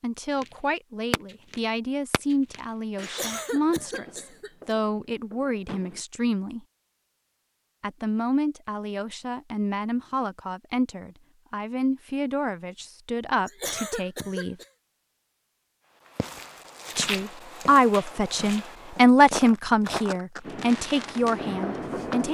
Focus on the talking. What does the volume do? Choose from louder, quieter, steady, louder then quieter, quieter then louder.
louder.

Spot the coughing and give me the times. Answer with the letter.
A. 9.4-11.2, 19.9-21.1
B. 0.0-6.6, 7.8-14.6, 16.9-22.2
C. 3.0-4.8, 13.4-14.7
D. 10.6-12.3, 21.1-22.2
C.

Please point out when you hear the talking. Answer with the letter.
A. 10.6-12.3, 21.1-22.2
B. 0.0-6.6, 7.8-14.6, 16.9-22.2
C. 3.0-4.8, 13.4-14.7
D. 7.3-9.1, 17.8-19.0
B.